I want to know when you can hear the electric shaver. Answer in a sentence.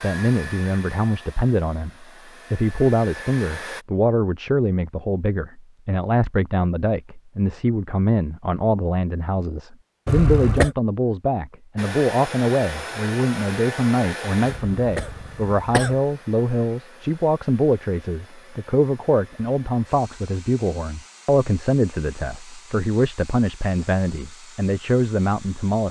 You can't hear the electric shaver here.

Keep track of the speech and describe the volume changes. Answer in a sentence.
The loudness of the speech stays about the same.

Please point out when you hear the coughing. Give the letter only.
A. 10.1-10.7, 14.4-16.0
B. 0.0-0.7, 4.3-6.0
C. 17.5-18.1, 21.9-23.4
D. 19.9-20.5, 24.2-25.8
A.